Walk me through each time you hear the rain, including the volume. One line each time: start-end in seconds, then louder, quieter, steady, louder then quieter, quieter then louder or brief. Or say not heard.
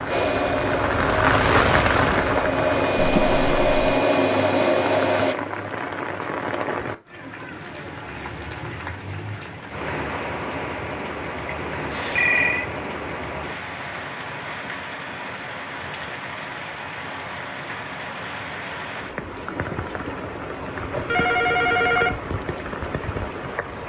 0.0-23.8 quieter.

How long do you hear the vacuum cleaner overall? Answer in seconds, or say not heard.
5 s.